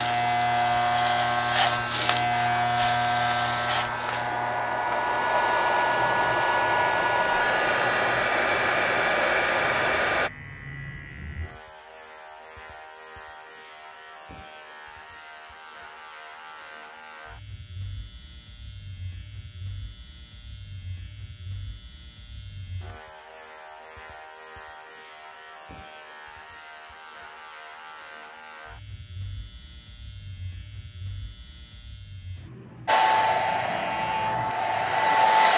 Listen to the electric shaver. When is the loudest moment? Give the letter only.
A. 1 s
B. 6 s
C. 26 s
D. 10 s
A.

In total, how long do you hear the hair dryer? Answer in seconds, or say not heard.
13 s.